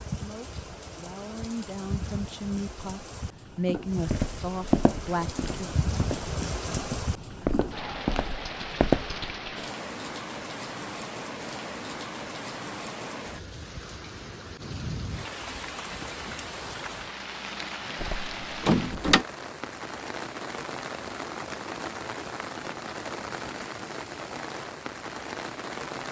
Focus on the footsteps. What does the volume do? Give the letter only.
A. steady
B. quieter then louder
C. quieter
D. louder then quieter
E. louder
B.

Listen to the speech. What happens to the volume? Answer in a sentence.
The loudness of the speech goes up, then down.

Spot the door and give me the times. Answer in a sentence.
You can hear the door from 18.0 to 19.2 s.